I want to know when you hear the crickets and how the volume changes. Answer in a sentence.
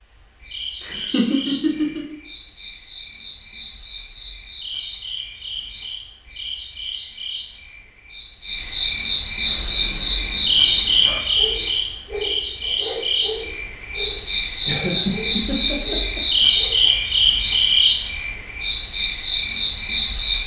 The crickets can be heard from 0.0 to 20.4 s, getting louder.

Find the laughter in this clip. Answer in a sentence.
The laughter can be heard from 0.8 to 2.0 s and from 14.7 to 16.4 s.